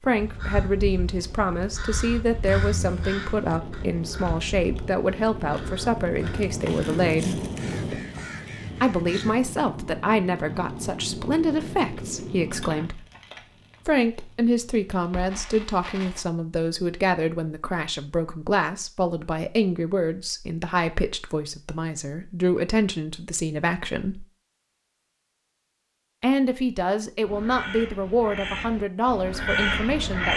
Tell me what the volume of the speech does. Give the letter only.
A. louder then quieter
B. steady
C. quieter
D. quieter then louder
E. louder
B.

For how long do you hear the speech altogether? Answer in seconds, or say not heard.
26 s.